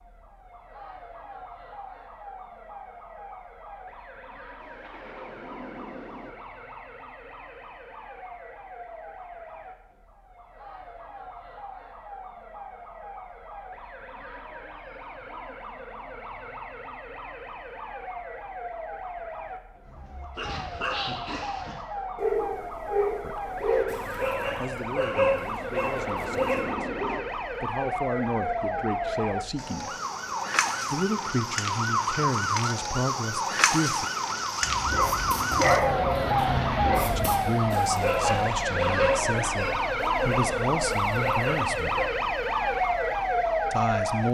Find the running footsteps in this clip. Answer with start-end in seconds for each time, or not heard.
not heard.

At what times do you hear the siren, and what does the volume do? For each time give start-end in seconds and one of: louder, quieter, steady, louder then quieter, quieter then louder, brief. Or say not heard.
0.0-44.3 louder.